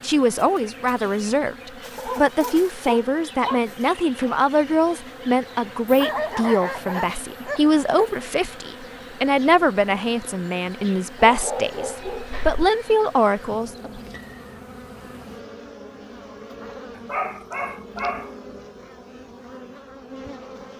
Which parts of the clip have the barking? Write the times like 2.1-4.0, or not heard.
1.9-3.6, 5.8-8.2, 11.2-12.7, 16.9-18.3.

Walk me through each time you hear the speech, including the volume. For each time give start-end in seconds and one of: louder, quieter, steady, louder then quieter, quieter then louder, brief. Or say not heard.
0.0-14.0 steady.